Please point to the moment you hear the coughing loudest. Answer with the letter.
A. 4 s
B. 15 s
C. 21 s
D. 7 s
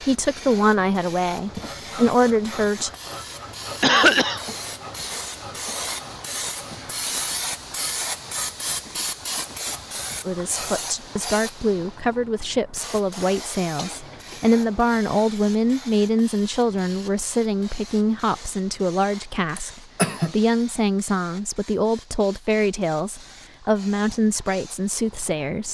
A.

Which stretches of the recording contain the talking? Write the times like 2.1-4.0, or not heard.
0.0-2.9, 10.2-25.6.